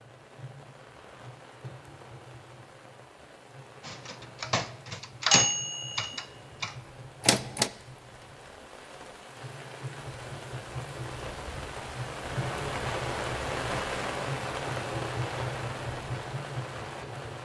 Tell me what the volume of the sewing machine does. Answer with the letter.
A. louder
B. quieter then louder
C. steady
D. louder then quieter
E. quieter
A.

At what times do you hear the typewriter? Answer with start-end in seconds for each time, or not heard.
3.9-7.7.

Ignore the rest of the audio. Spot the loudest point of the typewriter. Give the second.
5 s.